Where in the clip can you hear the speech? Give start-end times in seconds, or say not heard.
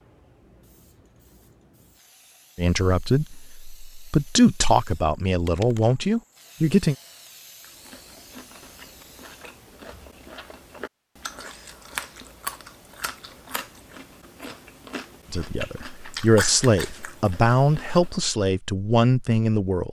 2.5-7.0, 15.3-19.8.